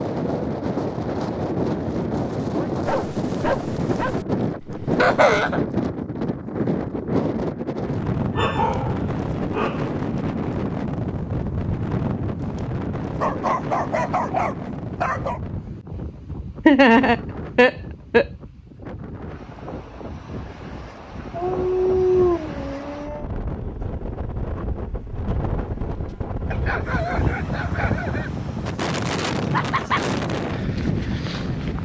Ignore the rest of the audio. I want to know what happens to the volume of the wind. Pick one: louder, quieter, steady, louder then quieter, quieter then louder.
quieter then louder.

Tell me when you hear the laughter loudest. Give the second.
17 s.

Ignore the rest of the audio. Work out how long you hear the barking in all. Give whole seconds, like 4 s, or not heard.
9 s.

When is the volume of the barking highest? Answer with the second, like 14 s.
22 s.